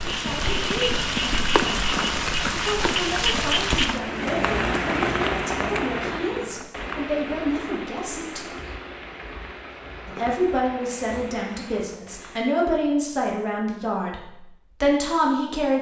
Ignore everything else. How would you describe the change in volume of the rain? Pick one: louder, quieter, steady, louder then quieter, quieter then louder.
quieter.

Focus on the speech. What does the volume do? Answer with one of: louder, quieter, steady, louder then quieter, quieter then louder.
louder.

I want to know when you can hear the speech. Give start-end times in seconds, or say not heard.
0.0-8.5, 10.1-15.7.